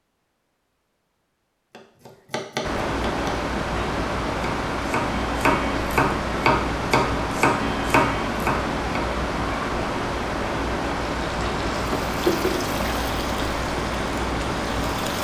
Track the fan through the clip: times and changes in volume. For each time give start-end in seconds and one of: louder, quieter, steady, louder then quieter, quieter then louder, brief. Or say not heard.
2.6-15.1 steady.